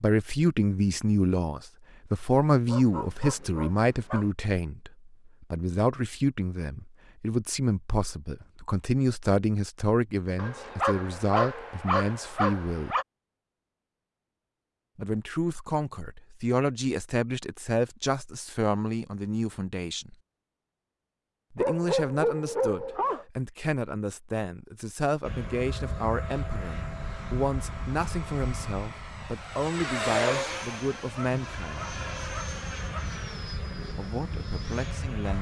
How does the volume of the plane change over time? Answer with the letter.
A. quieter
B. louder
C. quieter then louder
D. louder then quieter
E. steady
D.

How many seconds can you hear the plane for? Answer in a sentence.
The plane can be heard for 10 seconds in total.